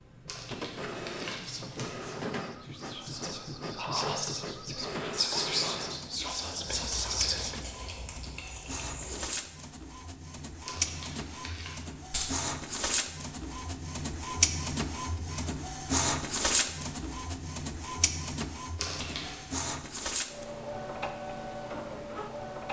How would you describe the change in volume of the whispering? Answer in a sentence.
The loudness of the whispering goes up.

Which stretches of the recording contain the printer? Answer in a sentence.
You can hear the printer from 0.0 to 22.6 s.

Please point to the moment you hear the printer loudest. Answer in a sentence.
The loudest moment of the printer is at 16 seconds.